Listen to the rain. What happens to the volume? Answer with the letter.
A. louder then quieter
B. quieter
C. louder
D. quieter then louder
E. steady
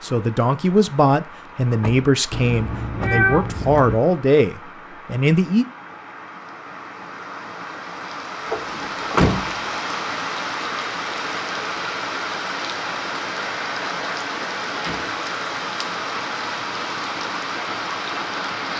C.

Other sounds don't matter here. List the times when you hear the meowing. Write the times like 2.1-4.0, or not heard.
2.3-4.0.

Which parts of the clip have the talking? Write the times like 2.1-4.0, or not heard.
0.0-5.7.